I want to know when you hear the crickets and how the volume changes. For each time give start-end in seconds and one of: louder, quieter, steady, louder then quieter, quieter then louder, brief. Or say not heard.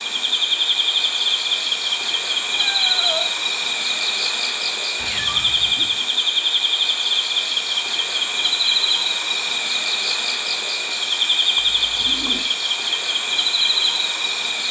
0.0-14.6 steady.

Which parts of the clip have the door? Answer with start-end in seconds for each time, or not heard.
not heard.